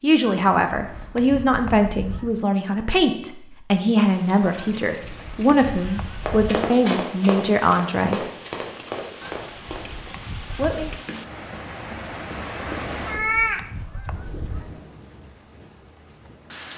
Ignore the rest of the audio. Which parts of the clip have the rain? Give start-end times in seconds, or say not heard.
4.0-16.7.